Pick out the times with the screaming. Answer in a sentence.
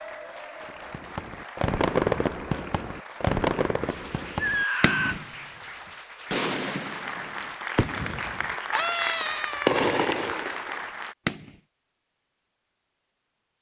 The screaming can be heard from 4.3 to 5.2 s and from 8.7 to 9.8 s.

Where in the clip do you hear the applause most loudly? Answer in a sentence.
The volume of the applause peaks at 9 seconds.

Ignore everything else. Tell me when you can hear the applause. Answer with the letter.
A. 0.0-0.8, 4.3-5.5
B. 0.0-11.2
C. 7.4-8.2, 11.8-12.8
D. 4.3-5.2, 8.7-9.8
B.